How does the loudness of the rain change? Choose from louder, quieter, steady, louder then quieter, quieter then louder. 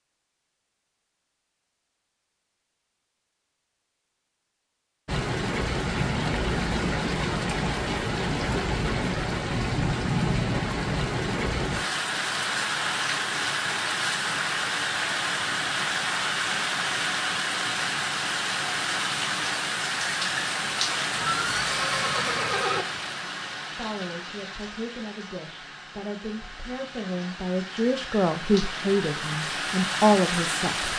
quieter.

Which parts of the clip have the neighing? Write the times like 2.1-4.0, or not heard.
21.2-22.9.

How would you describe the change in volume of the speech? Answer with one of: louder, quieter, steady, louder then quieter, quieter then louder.
louder.